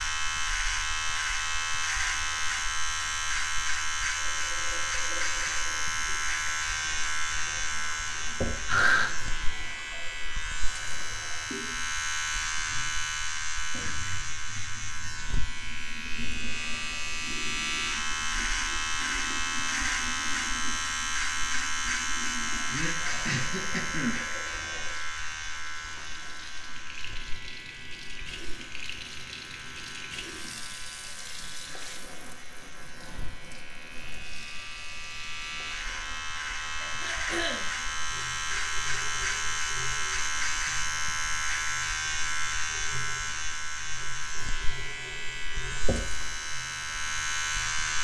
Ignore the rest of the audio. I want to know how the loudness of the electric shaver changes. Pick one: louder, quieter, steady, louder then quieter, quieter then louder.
quieter then louder.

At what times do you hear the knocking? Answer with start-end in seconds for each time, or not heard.
8.4-8.8, 45.9-46.3.